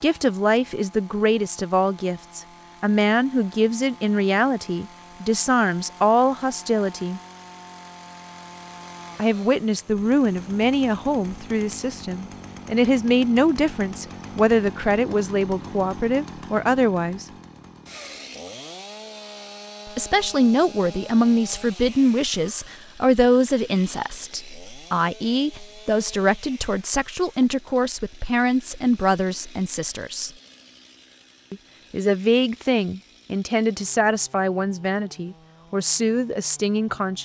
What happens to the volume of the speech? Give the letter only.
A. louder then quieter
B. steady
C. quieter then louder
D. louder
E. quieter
B.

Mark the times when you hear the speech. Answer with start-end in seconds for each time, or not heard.
0.0-7.2, 9.2-17.2, 19.9-30.3, 31.5-37.2.